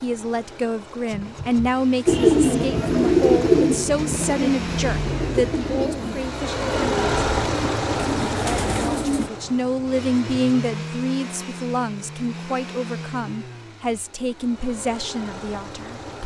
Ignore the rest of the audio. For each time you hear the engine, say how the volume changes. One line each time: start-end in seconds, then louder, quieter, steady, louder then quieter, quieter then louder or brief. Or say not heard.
0.0-16.2 louder then quieter.